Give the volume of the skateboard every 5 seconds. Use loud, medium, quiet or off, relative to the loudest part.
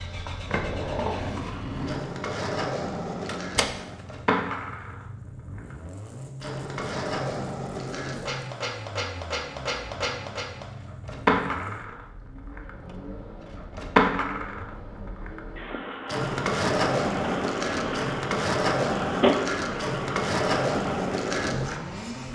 medium, medium, loud, loud, loud.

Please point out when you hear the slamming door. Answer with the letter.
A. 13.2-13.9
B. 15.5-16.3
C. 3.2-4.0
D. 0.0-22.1
C.